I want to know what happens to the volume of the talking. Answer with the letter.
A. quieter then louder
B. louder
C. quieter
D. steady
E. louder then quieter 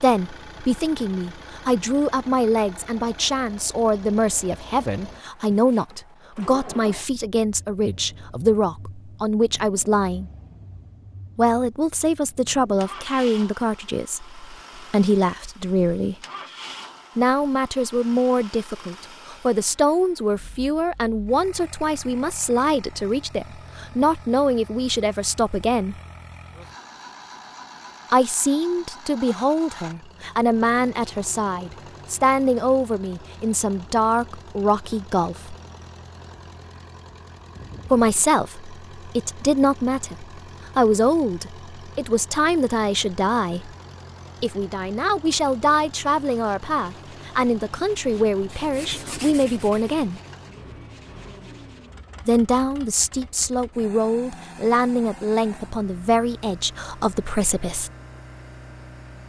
D.